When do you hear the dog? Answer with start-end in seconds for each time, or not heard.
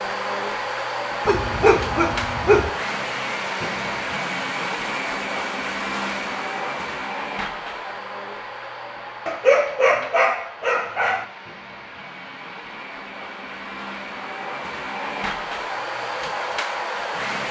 1.2-2.7, 9.2-11.2.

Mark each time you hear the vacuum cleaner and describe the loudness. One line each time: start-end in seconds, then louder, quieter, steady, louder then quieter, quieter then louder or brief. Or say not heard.
0.0-17.4 quieter then louder.